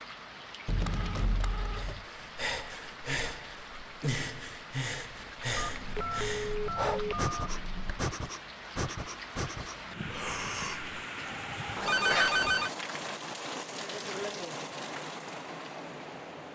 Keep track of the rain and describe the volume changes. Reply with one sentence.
The volume of the rain goes up.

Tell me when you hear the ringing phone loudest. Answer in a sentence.
The loudest moment of the ringing phone is at 12 seconds.